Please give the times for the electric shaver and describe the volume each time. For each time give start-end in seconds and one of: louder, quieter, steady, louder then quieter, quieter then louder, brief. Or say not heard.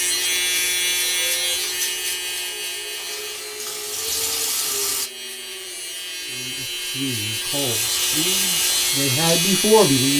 0.0-10.1 quieter then louder.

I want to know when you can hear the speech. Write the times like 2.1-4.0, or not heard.
6.3-10.1.